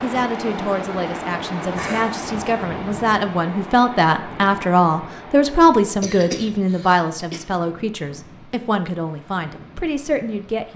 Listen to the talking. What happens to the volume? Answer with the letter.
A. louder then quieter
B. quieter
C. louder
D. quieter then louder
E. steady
A.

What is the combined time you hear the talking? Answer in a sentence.
You can hear the talking for 11 seconds altogether.